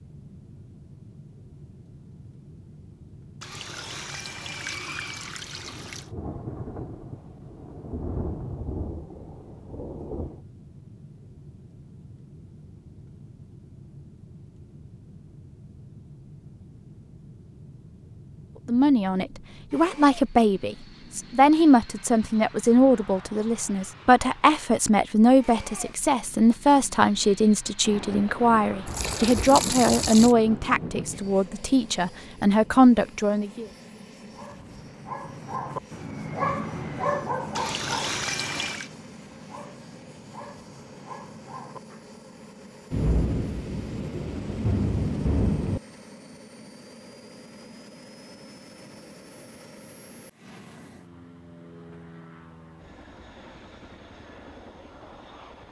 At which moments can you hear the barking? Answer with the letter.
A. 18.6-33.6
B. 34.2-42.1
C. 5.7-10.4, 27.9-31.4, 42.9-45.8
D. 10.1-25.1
B.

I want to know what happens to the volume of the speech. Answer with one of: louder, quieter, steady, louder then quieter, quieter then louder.
steady.